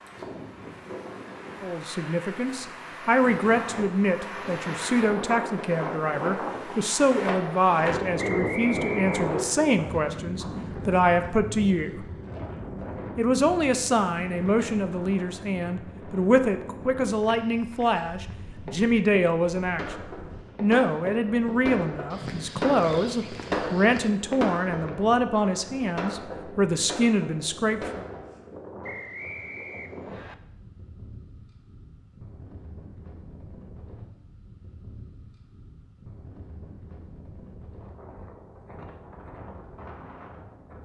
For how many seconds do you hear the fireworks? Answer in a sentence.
The fireworks can be heard for 9 seconds in total.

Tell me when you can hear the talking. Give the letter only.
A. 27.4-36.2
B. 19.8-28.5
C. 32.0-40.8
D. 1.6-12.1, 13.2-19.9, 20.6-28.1
D.